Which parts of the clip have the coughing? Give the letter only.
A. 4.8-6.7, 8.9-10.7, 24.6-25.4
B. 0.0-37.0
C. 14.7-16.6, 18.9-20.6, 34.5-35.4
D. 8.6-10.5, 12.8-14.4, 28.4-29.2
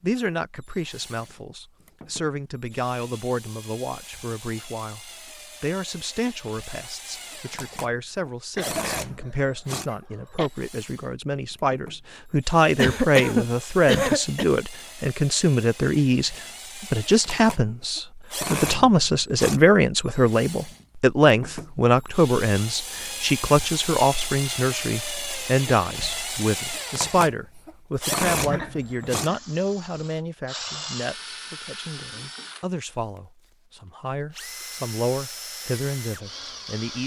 D.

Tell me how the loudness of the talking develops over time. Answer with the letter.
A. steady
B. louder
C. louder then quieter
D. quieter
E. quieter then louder
C.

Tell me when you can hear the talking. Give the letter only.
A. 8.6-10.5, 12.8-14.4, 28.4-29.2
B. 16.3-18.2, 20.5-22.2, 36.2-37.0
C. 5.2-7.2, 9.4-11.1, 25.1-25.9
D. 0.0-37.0
D.